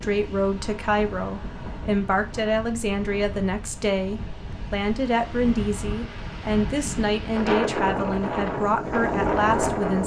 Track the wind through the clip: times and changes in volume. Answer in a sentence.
You can hear the wind from 0.0 to 10.0 s, getting louder.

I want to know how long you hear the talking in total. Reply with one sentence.
The talking can be heard for 10 seconds in total.